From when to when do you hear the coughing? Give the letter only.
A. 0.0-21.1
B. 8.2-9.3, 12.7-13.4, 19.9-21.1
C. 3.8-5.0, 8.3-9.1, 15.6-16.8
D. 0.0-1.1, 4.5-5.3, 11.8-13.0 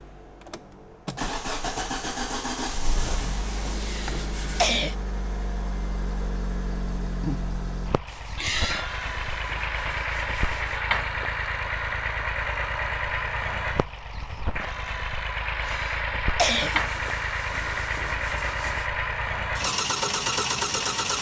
C.